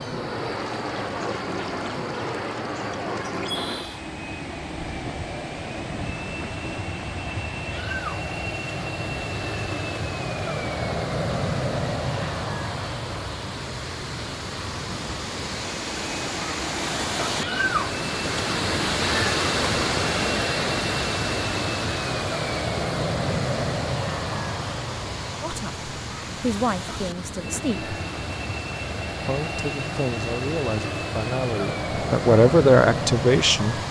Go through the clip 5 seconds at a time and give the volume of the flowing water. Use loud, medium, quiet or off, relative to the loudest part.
medium, medium, medium, loud, loud, medium, medium.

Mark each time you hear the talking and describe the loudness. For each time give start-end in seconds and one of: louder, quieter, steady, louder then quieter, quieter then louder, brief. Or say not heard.
25.4-27.9 brief
29.2-33.8 louder.